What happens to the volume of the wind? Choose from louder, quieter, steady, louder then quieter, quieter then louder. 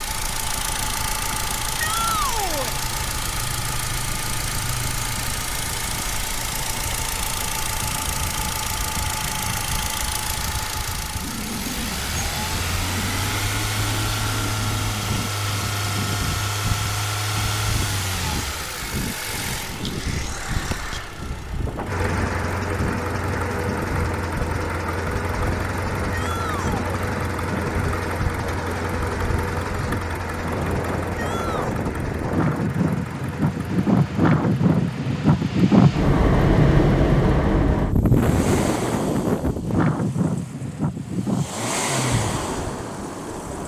louder.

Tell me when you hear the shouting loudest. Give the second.
2 s.